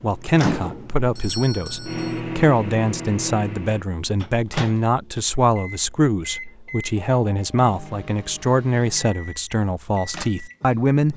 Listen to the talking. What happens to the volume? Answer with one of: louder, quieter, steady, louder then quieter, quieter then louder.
steady.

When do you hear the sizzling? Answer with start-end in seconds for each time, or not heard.
not heard.